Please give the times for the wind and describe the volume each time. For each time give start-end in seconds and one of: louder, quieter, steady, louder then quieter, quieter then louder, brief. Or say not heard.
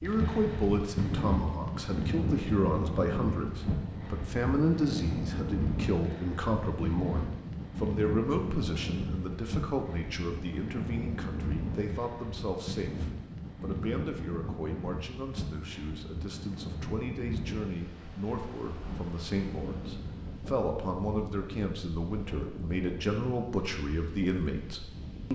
0.0-25.2 quieter.